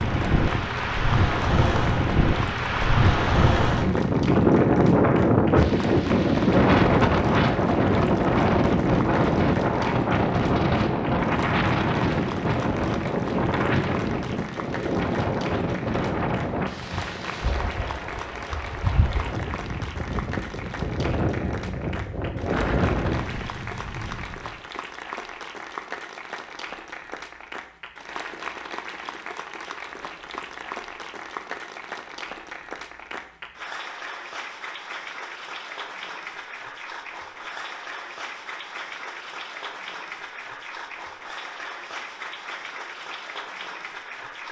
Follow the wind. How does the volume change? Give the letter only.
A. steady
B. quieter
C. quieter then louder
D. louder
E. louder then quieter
B.